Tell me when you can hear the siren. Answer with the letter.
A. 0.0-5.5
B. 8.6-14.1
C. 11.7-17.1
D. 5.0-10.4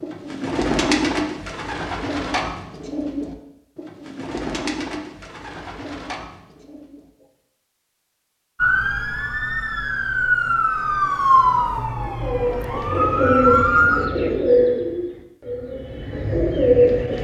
B.